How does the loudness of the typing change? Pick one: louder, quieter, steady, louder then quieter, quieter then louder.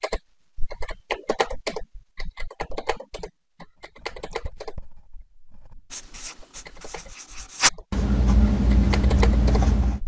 quieter then louder.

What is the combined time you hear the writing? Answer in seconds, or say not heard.
6 s.